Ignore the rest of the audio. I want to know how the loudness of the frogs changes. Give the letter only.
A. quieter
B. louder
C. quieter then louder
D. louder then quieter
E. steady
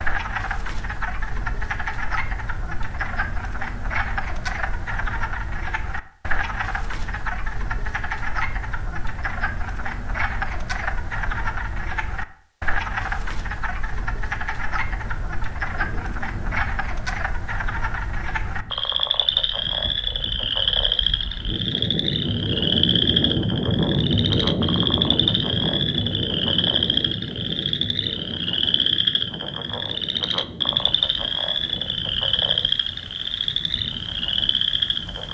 B.